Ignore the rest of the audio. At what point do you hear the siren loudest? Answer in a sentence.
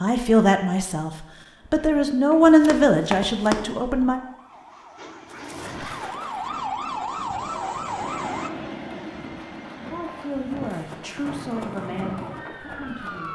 The loudest moment of the siren is at 7 seconds.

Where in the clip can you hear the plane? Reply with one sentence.
You can hear the plane from 4.5 to 6.2 s and from 8.0 to 11.7 s.